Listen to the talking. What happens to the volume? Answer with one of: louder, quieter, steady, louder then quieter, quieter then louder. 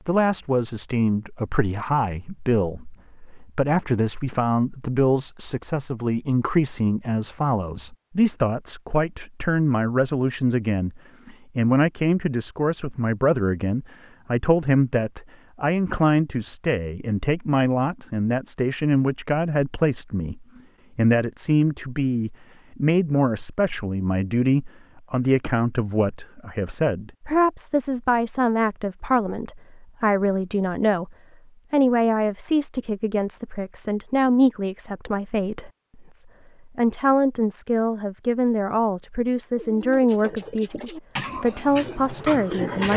steady.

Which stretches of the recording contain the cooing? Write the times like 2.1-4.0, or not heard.
39.5-42.9.